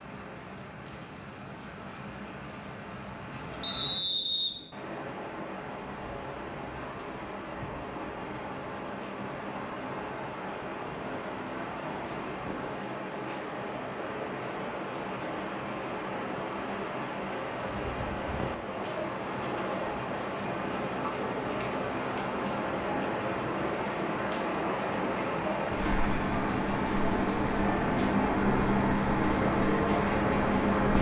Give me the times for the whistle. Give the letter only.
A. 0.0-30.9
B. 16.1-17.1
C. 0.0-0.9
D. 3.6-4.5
D.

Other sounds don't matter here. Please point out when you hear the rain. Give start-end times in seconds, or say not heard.
0.0-30.9.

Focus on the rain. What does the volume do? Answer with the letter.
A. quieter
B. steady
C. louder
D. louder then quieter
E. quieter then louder
C.